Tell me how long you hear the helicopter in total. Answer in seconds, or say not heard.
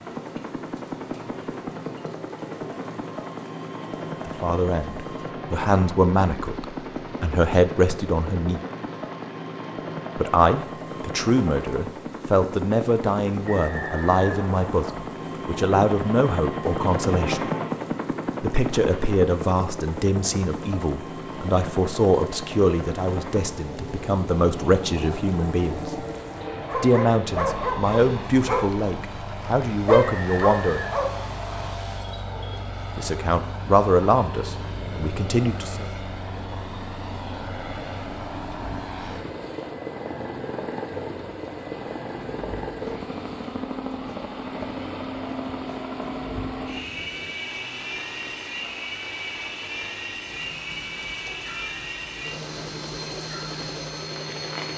55 s.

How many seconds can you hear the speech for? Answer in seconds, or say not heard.
26 s.